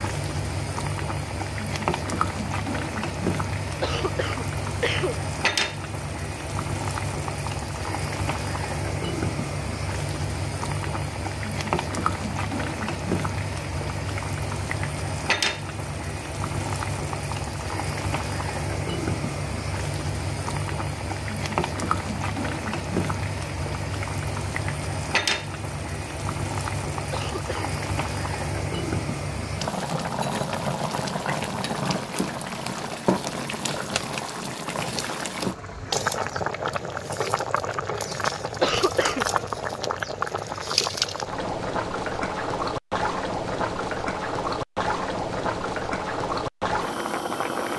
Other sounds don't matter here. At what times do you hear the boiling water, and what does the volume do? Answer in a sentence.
The boiling water can be heard from 0.0 to 47.7 s, at a steady volume.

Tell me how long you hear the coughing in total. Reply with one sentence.
The coughing can be heard for 3 seconds in total.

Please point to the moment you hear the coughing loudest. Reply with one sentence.
The volume of the coughing peaks at 39 seconds.